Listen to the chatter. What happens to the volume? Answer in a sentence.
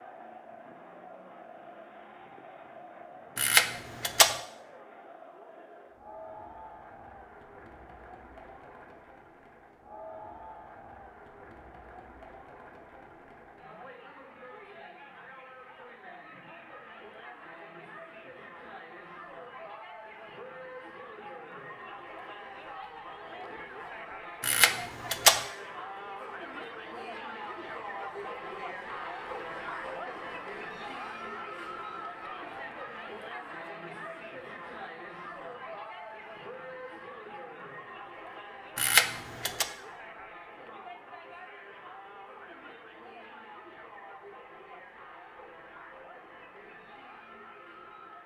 The loudness of the chatter goes up, then down.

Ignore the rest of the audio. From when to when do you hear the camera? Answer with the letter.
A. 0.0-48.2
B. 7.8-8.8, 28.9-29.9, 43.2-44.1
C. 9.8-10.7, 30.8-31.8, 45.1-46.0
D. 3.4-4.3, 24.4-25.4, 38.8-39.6
D.